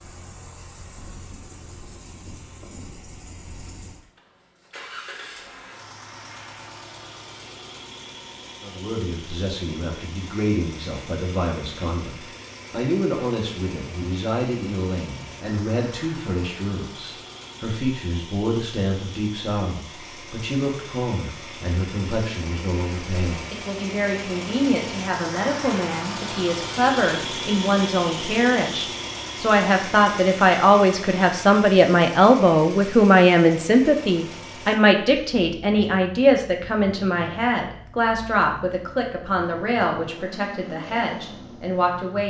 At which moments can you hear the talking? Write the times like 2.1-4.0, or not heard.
8.6-42.2.